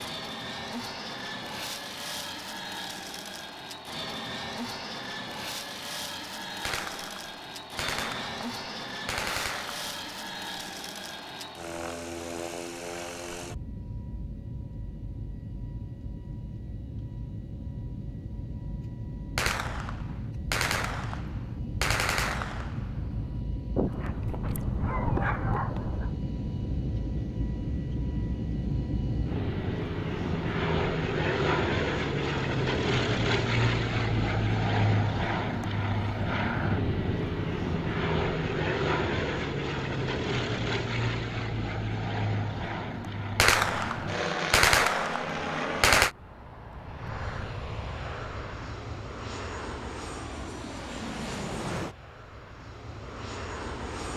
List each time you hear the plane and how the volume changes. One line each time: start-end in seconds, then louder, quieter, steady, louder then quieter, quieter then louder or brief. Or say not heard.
0.0-54.1 louder then quieter.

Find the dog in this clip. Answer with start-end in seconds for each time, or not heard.
23.8-26.2.